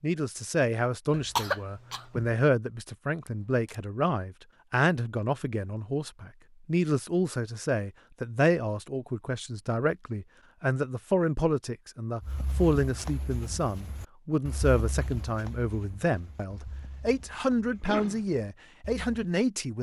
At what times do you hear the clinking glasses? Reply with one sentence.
The clinking glasses can't be heard in this clip.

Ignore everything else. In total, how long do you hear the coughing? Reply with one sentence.
You can hear the coughing for 2 seconds altogether.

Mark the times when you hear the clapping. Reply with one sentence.
You can't hear the clapping here.